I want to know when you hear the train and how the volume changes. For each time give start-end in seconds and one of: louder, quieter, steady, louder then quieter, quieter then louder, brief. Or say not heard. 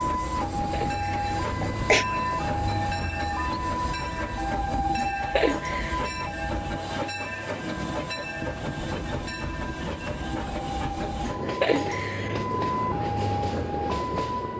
0.0-14.5 steady.